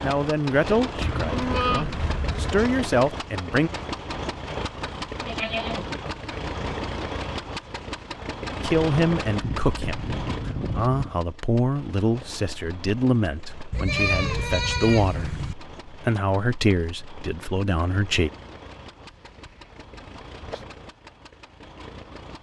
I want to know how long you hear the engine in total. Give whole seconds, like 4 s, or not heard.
22 s.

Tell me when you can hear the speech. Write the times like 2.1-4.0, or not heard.
0.0-3.7, 8.6-18.3.